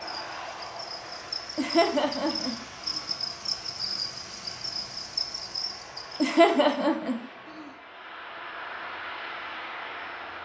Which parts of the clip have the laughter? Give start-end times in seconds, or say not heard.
1.6-3.0, 6.2-7.7.